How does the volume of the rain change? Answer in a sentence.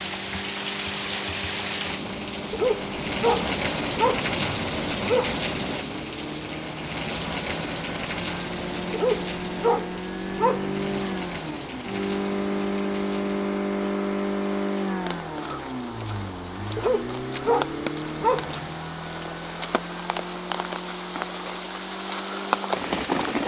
The loudness of the rain goes down, then up.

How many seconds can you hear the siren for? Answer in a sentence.
The siren can't be heard in this clip.